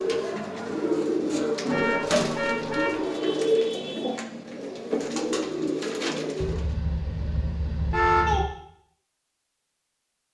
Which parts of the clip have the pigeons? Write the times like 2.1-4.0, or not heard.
0.0-6.7.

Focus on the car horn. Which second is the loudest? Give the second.
8 s.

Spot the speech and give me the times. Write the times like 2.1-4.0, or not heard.
not heard.